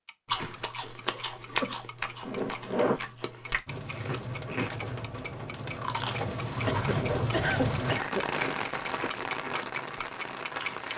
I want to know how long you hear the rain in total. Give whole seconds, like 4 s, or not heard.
7 s.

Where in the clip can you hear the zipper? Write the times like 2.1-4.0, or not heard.
2.2-3.0, 6.5-7.3.